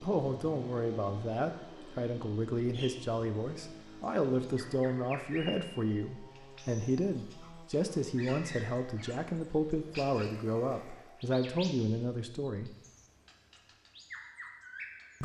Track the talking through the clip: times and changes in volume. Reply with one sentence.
You can hear the talking from 0.0 to 12.8 s, at a steady volume.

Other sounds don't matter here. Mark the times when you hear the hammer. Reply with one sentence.
You can't hear the hammer here.